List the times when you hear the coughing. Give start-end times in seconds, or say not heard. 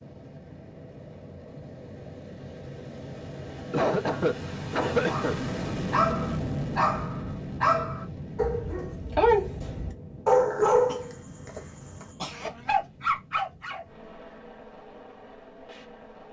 3.7-5.3, 10.8-12.5.